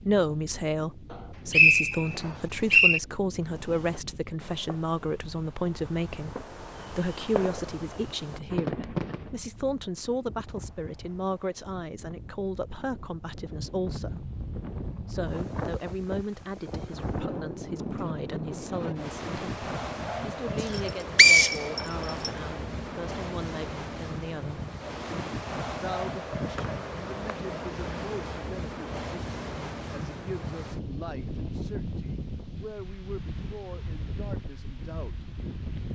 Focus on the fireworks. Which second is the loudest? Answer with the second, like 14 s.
9 s.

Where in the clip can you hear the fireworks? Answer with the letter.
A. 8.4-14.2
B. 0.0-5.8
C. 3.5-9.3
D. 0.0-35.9
C.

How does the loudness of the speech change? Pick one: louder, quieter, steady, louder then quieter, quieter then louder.
quieter.